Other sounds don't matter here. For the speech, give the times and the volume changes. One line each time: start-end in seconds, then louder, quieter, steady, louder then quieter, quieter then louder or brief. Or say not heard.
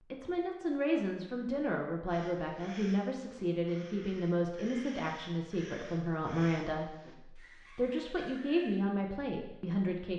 0.1-10.1 steady.